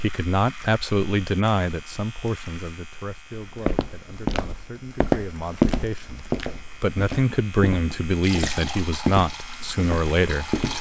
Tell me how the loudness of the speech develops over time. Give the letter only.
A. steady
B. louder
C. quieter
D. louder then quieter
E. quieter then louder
E.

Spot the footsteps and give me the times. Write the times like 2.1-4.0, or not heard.
3.3-10.7.